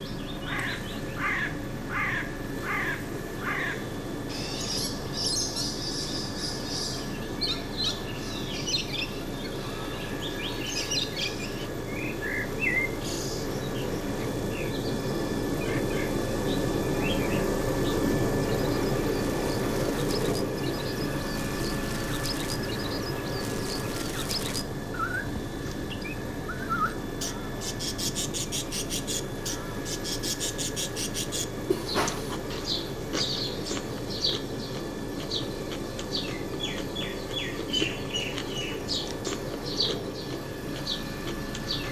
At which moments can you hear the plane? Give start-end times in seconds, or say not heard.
0.0-41.8.